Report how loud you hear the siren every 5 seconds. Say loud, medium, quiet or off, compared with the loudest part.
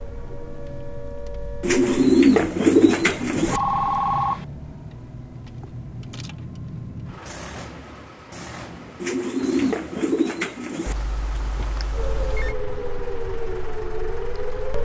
medium, off, loud.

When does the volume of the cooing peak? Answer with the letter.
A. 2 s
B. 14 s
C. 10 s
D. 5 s
A.